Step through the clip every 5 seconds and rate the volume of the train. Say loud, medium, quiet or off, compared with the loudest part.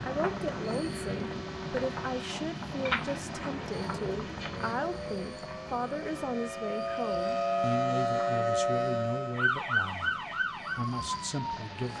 loud, medium, medium.